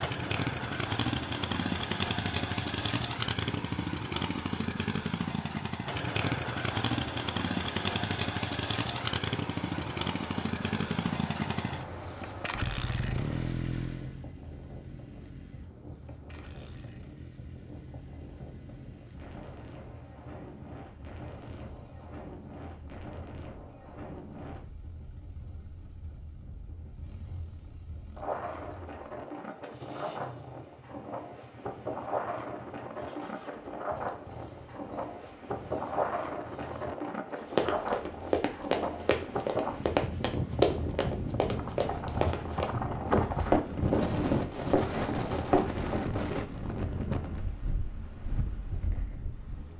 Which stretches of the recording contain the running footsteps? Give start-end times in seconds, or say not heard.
37.5-46.0.